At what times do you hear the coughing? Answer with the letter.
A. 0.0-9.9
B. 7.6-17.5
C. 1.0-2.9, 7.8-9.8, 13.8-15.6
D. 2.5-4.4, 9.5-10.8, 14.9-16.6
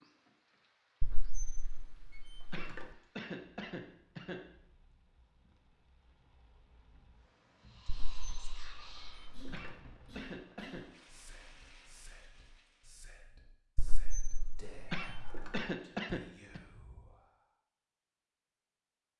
D.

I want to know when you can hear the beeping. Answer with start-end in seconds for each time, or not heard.
not heard.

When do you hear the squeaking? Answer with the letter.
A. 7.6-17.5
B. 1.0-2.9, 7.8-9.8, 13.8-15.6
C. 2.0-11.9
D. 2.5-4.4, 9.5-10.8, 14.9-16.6
B.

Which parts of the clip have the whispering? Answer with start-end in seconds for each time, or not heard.
7.6-17.5.